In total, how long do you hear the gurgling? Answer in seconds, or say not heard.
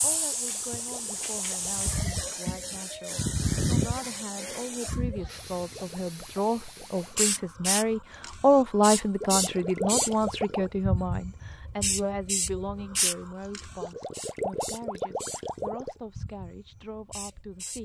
8 s.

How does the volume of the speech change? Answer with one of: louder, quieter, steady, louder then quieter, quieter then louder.
louder then quieter.